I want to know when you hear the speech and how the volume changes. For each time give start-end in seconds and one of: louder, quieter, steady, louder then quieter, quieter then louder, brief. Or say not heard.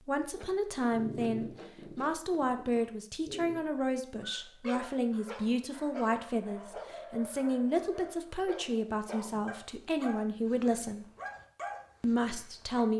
0.0-11.1 steady
12.0-12.9 brief.